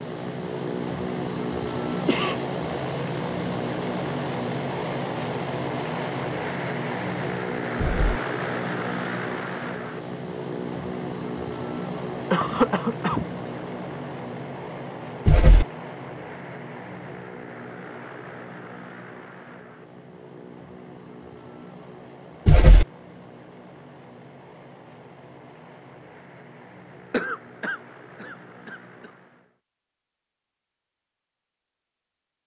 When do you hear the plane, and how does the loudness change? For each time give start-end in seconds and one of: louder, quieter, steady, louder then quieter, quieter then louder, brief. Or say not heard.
0.0-29.6 quieter.